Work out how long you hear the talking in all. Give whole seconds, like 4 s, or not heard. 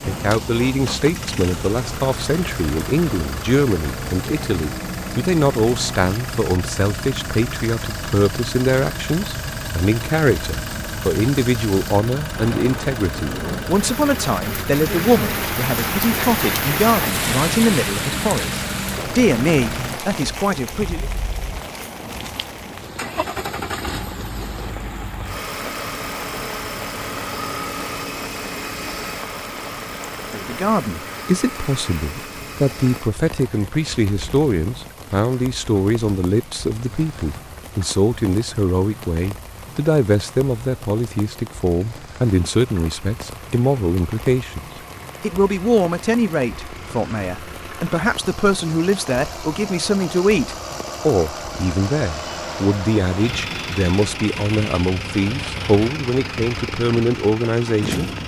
49 s.